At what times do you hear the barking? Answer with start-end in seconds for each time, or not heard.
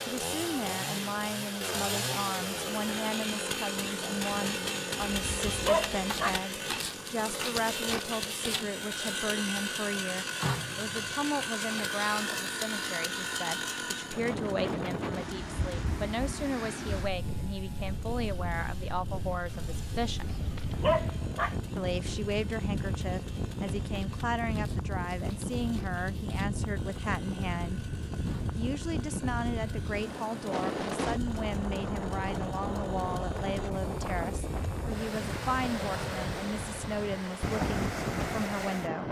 5.0-6.4, 20.1-21.6.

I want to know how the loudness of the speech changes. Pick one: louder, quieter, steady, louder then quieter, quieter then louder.
steady.